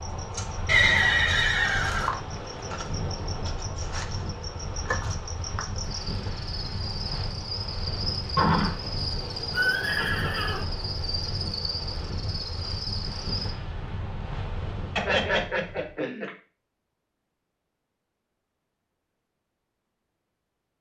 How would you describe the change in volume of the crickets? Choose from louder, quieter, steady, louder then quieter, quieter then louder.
steady.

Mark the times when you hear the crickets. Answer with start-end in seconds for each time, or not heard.
0.0-13.6.